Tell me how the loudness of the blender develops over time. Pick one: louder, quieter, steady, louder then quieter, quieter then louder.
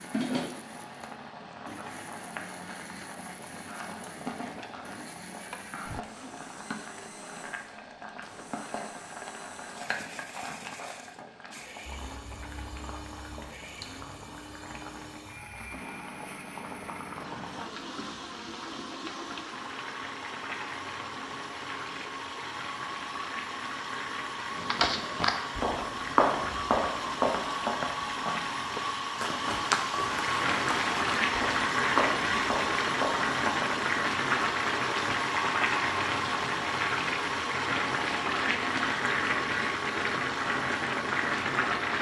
louder.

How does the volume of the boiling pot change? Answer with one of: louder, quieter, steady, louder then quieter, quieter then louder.
louder.